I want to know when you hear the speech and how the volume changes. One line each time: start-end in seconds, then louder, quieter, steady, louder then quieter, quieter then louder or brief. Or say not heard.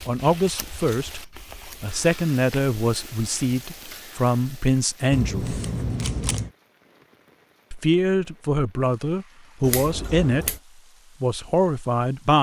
0.1-5.6 louder
7.7-10.6 brief
11.2-12.3 brief.